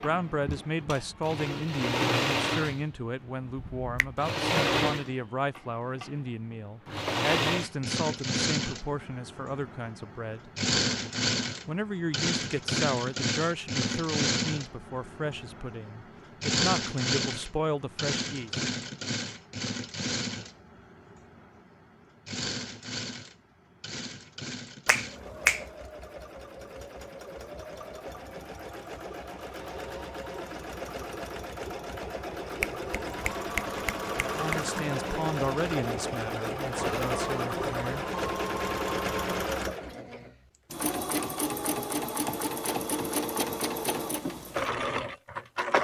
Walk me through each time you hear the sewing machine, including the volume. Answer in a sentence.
You can hear the sewing machine from 0.0 to 45.8 s, getting quieter then louder.